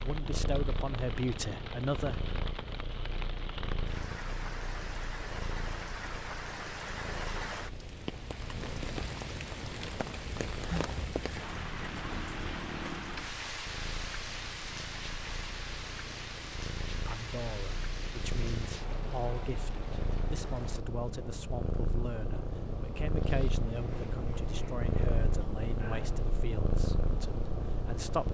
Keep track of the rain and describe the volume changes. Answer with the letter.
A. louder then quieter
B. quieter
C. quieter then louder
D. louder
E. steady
A.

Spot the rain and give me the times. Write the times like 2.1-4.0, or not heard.
0.0-20.9.